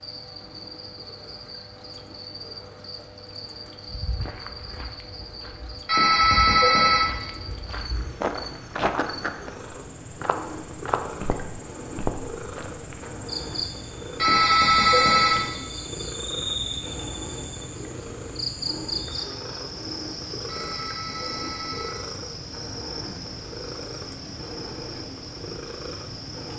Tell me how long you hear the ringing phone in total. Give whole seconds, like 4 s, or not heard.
4 s.